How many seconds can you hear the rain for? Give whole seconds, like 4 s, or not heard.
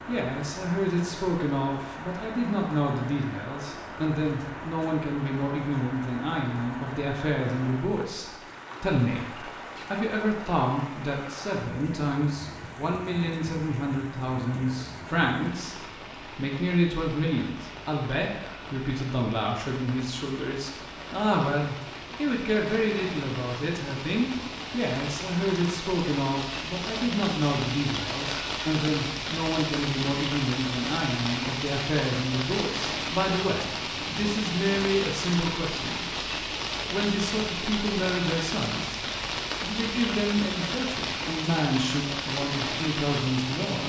44 s.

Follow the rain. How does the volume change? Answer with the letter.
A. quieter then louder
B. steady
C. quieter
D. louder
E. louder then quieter
D.